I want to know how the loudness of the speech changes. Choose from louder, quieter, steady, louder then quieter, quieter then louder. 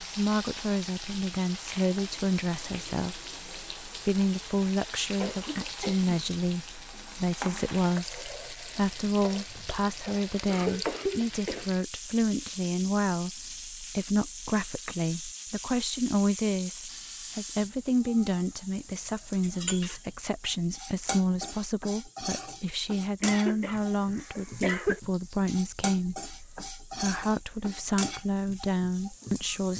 steady.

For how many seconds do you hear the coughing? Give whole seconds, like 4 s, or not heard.
4 s.